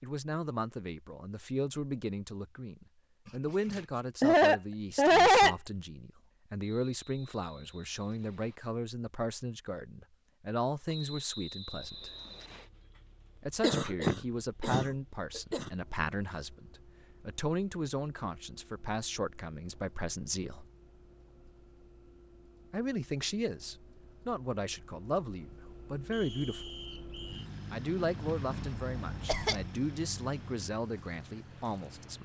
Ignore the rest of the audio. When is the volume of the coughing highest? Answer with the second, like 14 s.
5 s.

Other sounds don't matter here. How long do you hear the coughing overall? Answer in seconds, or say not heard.
5 s.